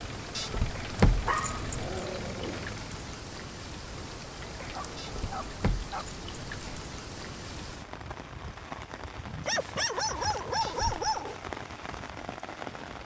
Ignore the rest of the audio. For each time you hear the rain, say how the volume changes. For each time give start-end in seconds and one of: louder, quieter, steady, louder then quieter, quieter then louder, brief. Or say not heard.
0.0-13.0 steady.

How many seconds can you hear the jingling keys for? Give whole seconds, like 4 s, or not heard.
4 s.